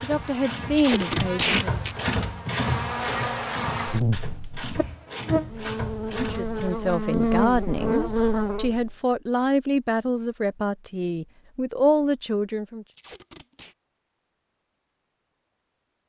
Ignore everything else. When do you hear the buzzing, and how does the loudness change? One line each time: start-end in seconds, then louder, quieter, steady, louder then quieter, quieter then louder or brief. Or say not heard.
0.0-8.9 louder.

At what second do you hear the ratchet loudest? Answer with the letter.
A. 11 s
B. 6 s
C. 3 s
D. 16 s
C.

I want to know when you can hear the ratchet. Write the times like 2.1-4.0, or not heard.
0.0-6.7.